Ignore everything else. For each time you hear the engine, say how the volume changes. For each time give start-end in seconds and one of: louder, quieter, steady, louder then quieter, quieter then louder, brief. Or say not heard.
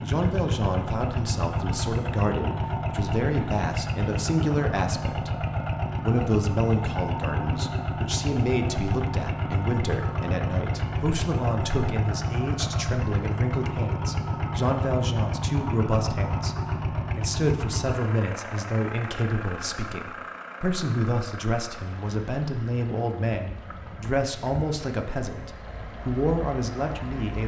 0.0-27.4 quieter.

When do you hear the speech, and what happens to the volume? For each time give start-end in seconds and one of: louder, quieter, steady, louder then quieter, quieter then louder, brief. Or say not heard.
0.0-16.6 steady
17.1-27.4 steady.